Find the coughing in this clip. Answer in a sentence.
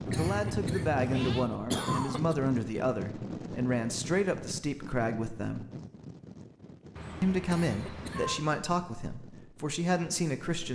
The coughing can be heard from 0.1 to 2.4 s and from 7.5 to 8.3 s.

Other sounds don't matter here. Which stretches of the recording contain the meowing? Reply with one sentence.
The meowing can be heard from 0.1 to 1.4 s and from 7.0 to 8.4 s.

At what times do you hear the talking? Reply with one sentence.
You can hear the talking from 0.1 to 5.7 s and from 7.2 to 10.6 s.